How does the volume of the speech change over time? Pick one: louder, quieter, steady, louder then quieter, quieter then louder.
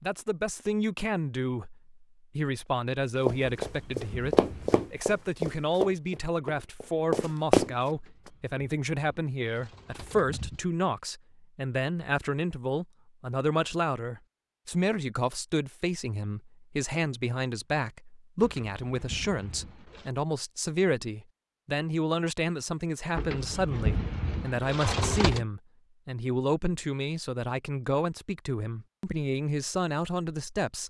steady.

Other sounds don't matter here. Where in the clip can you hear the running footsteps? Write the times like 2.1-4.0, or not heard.
3.2-7.7.